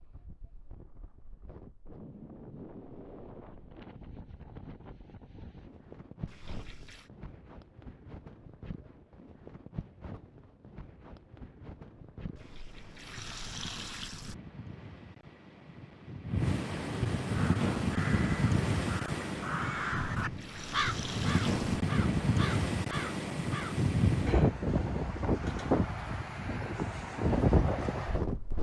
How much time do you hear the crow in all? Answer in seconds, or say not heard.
7 s.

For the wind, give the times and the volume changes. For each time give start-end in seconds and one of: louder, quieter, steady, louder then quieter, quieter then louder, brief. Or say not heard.
0.0-28.5 louder.